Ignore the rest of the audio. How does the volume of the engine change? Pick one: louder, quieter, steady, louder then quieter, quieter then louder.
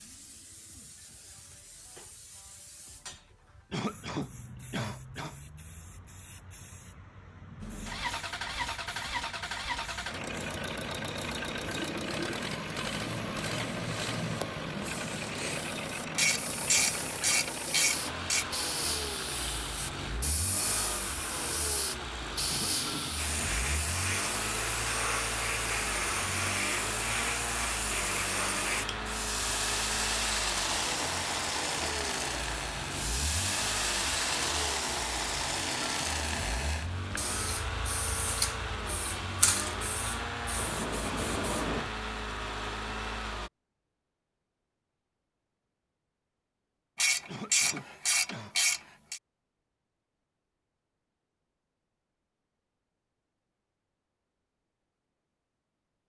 steady.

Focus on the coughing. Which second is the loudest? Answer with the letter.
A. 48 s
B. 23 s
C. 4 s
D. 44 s
C.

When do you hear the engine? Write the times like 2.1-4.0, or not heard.
7.6-43.5.